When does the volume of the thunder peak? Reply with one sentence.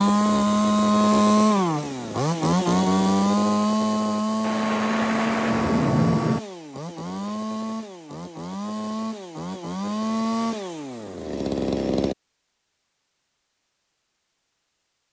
The volume of the thunder peaks at 6 seconds.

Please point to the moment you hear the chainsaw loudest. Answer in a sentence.
The loudest moment of the chainsaw is at 1 second.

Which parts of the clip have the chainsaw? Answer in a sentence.
The chainsaw can be heard from 0.0 to 12.2 s.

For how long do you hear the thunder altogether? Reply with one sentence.
The thunder can be heard for 2 seconds in total.